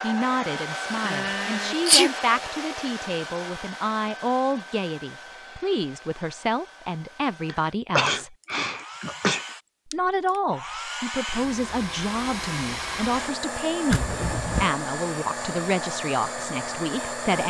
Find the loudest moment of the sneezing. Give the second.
2 s.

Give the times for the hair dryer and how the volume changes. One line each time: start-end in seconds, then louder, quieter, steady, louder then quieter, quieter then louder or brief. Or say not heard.
0.0-17.4 quieter then louder.